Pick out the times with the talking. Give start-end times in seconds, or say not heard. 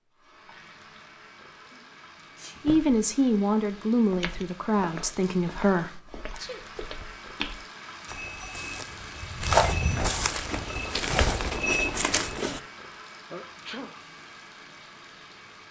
2.6-6.2.